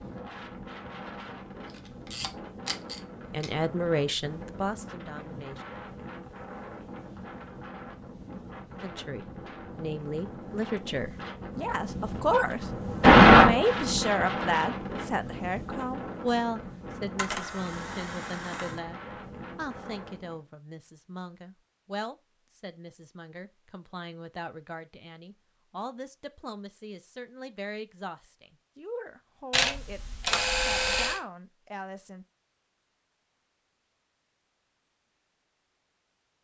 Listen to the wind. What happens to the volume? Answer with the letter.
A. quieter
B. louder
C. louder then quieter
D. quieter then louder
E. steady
C.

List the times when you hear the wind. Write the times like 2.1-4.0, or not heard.
0.0-20.4.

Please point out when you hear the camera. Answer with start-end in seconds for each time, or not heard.
1.6-3.5, 17.1-18.8, 29.5-31.2.